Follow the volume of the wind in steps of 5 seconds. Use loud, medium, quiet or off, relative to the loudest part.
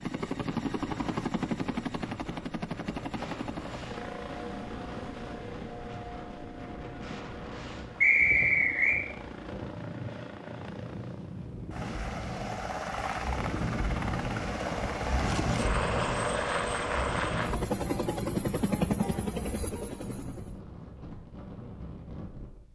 medium, medium, loud, loud, medium.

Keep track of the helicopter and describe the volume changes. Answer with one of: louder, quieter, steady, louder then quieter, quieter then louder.
quieter then louder.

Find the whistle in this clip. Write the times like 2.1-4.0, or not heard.
8.0-9.0.